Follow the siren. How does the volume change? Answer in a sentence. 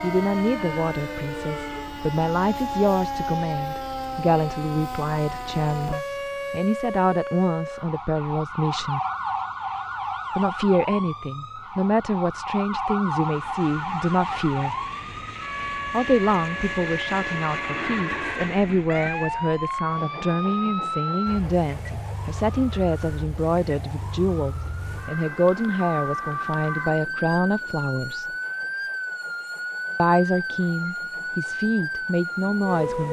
The loudness of the siren stays about the same.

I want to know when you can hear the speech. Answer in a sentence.
The speech can be heard from 0.0 to 9.0 s, from 10.3 to 14.8 s, from 15.9 to 28.2 s and from 29.9 to 33.0 s.